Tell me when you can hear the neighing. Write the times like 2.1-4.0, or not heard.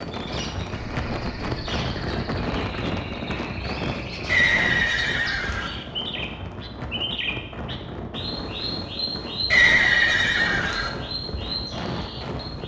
0.7-2.2, 4.2-5.7, 9.5-10.9.